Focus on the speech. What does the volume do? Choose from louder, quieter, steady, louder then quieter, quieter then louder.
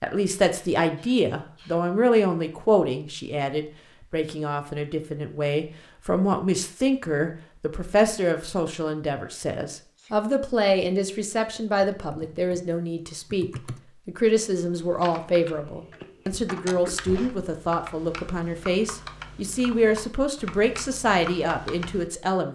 steady.